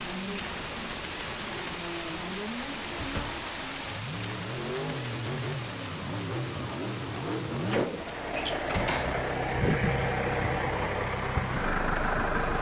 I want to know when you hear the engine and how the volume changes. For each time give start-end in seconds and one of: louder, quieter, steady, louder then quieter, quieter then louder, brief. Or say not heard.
0.0-12.5 louder.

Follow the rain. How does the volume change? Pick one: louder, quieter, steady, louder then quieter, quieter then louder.
quieter.